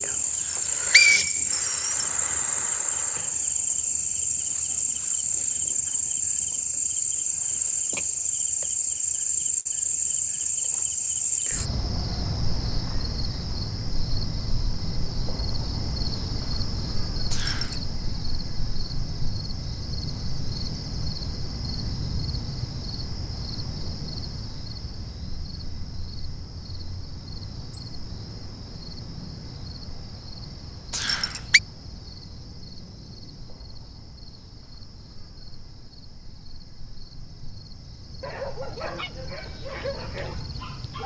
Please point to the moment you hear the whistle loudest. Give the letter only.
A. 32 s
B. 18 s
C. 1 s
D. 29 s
C.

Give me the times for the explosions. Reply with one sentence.
You can't hear the explosions here.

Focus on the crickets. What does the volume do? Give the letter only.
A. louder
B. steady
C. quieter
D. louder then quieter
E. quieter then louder
C.